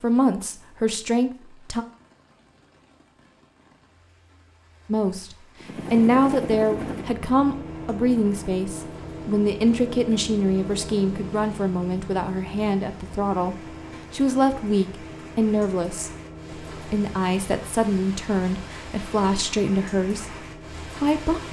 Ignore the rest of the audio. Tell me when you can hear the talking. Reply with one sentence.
You can hear the talking from 0.0 to 1.9 s and from 4.8 to 21.4 s.